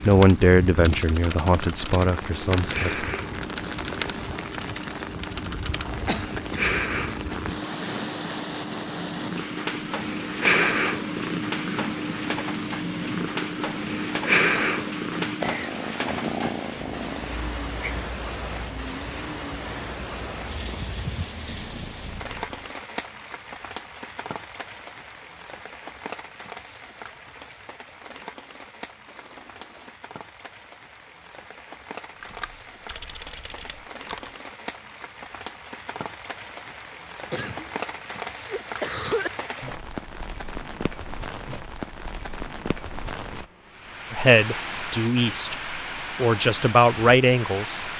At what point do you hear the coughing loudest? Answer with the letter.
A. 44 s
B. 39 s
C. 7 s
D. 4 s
B.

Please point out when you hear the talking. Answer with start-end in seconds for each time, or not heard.
0.1-3.0, 44.1-47.8.